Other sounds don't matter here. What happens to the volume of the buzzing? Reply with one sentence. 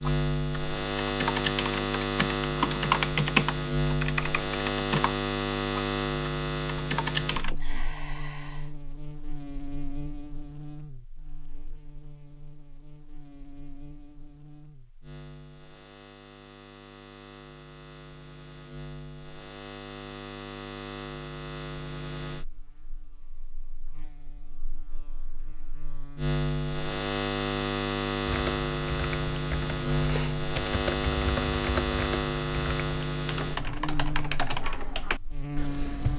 The loudness of the buzzing goes down, then up.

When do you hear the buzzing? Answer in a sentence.
You can hear the buzzing from 0.0 to 36.1 s.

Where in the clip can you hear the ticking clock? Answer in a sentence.
You can't hear the ticking clock here.